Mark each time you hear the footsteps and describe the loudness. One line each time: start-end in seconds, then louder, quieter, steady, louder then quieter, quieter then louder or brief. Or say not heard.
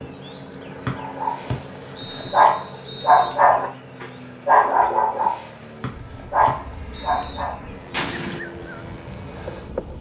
not heard.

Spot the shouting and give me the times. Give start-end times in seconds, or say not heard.
not heard.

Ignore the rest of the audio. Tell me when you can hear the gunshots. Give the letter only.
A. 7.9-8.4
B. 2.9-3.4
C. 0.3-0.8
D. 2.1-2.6
A.